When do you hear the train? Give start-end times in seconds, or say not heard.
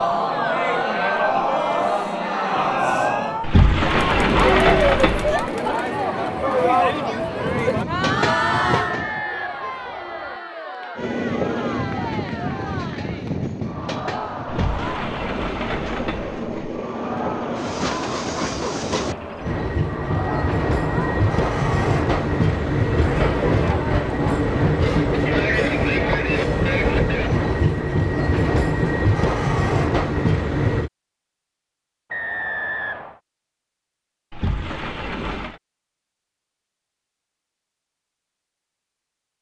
5.3-9.2, 10.9-30.9.